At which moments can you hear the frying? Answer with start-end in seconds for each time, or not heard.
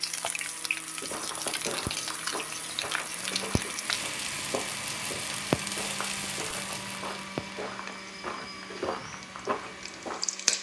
0.0-10.5.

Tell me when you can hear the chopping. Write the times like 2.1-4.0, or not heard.
not heard.